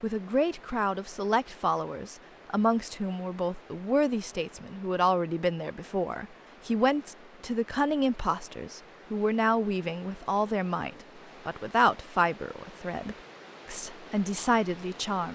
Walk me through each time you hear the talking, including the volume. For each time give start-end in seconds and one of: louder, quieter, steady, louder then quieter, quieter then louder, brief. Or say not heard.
0.0-15.3 steady.